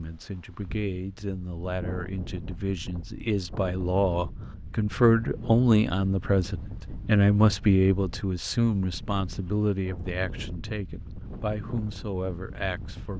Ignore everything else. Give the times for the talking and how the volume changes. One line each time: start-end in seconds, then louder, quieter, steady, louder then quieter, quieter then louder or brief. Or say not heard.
0.0-13.1 louder then quieter.